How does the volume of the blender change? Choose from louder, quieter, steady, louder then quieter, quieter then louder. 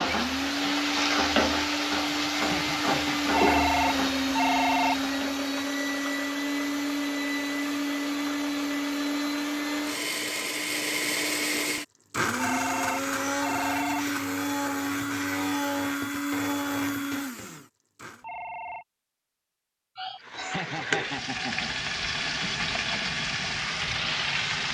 steady.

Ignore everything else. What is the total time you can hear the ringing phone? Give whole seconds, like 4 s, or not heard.
4 s.